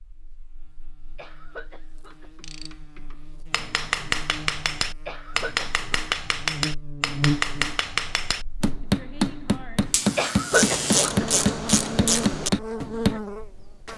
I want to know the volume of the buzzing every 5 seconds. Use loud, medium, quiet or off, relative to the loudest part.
quiet, loud, loud.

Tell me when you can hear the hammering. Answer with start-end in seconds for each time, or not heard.
3.5-13.2.